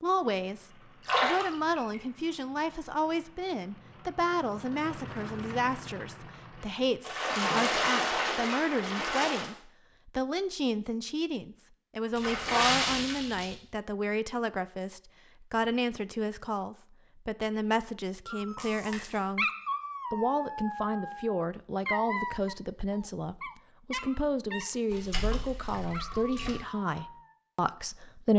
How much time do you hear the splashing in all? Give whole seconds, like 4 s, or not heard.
7 s.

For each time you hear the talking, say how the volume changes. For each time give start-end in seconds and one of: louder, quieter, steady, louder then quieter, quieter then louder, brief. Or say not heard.
0.0-19.4 steady
20.1-28.3 steady.